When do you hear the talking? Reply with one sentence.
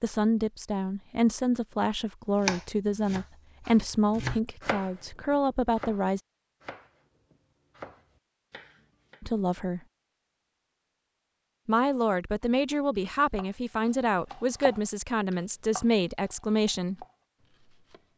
The talking can be heard from 0.0 to 6.2 s, from 9.2 to 9.8 s and from 11.7 to 17.1 s.